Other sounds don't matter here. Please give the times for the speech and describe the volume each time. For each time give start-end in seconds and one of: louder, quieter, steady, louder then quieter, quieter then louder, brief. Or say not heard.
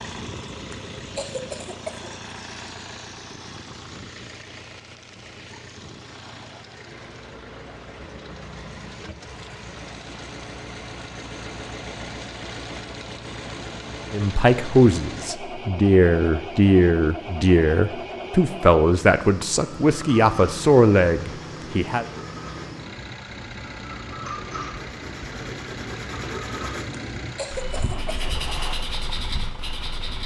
14.1-22.1 steady.